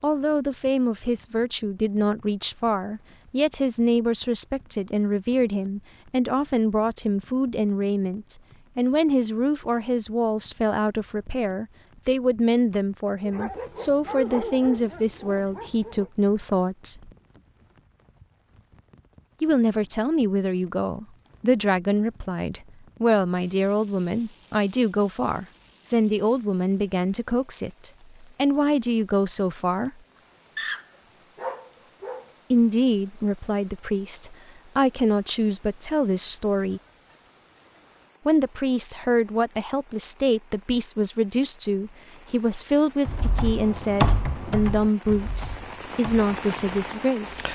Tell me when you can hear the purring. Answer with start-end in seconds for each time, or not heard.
not heard.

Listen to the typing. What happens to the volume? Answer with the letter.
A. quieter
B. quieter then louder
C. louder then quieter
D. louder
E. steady
A.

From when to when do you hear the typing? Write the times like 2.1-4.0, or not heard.
43.0-47.4.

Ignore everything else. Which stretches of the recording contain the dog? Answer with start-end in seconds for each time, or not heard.
13.2-16.1, 30.6-32.3.